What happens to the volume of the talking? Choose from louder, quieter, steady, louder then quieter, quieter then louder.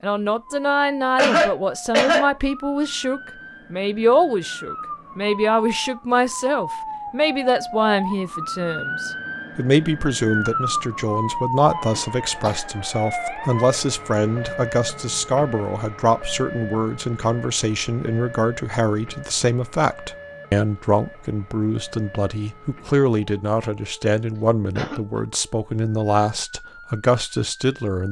steady.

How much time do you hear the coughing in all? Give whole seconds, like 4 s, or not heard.
2 s.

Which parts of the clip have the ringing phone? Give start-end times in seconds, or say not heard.
not heard.